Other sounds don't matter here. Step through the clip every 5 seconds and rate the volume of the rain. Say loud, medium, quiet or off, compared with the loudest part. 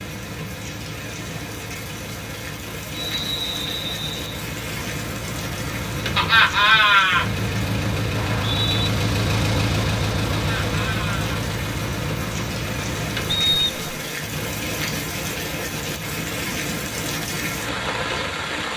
medium, medium, loud, loud.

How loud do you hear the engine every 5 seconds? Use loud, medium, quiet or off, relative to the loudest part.
medium, loud, loud, medium.